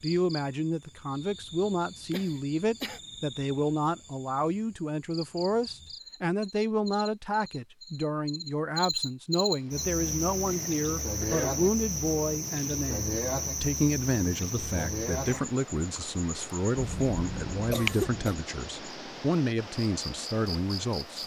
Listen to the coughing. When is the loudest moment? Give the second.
18 s.